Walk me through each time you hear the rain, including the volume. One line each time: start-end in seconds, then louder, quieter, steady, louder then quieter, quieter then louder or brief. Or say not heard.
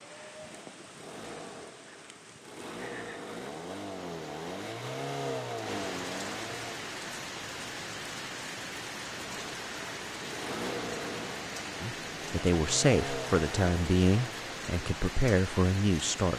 0.0-16.3 louder.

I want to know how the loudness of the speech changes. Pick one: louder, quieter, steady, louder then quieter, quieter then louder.
quieter then louder.